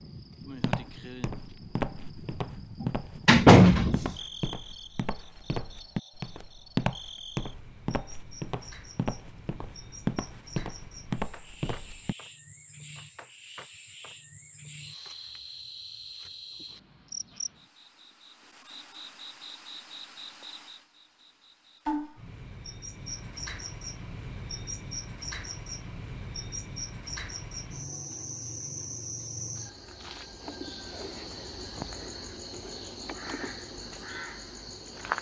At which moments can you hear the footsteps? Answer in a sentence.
You can hear the footsteps from 0.6 to 12.2 s.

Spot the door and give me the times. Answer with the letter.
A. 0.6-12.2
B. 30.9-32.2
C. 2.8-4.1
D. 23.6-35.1
C.